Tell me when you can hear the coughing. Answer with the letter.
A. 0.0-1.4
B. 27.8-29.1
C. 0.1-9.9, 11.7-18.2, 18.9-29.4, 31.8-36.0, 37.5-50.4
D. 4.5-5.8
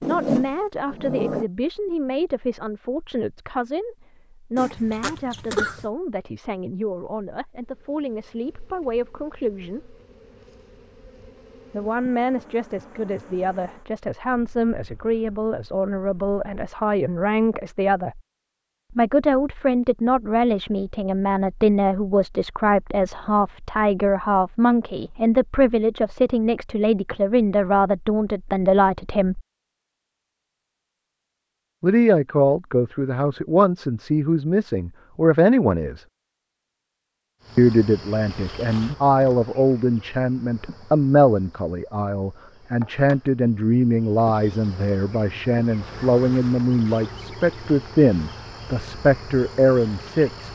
D.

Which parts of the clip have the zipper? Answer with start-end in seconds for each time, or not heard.
0.0-1.4.